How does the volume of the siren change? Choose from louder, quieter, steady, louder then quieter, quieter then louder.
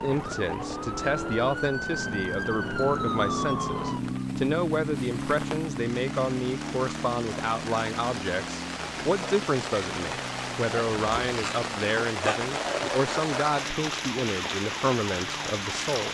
quieter.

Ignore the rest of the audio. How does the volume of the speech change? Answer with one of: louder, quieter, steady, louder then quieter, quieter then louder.
steady.